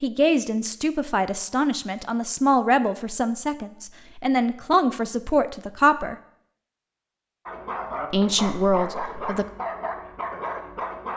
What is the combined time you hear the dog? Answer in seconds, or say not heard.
4 s.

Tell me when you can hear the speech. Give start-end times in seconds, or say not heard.
0.0-6.2, 8.1-9.4.